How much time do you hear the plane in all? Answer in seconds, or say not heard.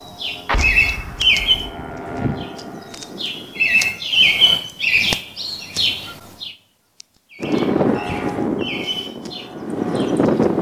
7 s.